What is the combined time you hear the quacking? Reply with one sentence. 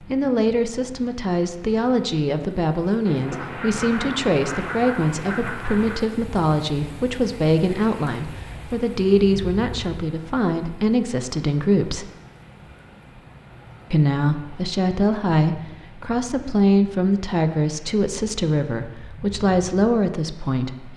You can hear the quacking for 3 seconds altogether.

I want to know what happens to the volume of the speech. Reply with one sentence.
The volume of the speech stays about the same.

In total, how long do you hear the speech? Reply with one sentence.
The speech can be heard for 19 seconds in total.